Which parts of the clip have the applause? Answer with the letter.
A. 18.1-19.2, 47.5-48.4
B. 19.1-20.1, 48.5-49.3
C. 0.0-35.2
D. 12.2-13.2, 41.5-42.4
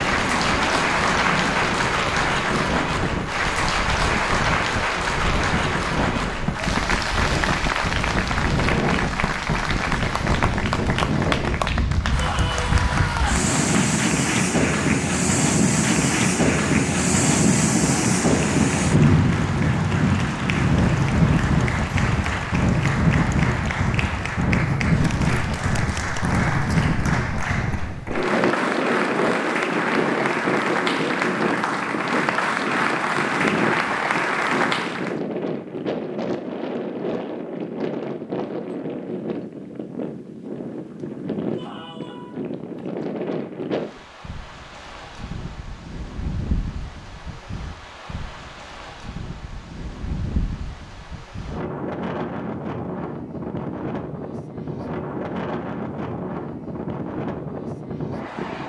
C.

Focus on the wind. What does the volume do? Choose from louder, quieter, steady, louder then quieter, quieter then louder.
louder then quieter.